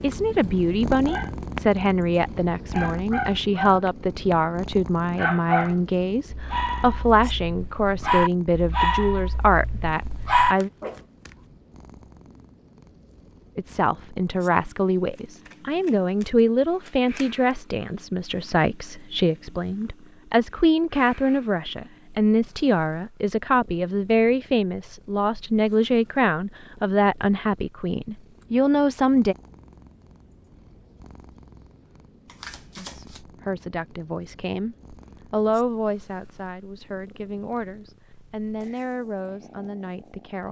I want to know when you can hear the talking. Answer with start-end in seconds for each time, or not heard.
0.0-10.7, 13.6-29.4, 32.8-40.4.